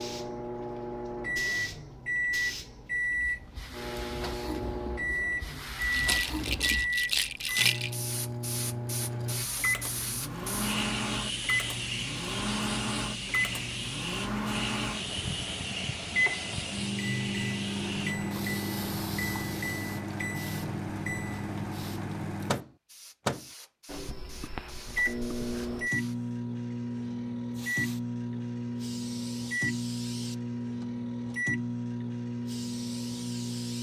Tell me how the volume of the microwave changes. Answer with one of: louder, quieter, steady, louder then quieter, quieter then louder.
steady.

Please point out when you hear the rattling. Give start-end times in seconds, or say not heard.
5.9-8.0.